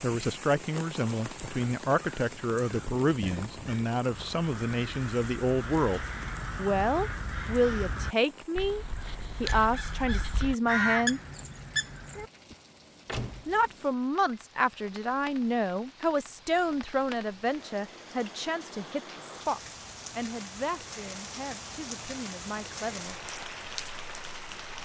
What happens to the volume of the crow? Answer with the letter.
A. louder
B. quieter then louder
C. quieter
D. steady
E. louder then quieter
A.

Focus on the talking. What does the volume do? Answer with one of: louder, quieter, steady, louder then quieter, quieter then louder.
quieter.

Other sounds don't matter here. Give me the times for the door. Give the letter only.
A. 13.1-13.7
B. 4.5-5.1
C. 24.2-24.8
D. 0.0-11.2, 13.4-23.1
A.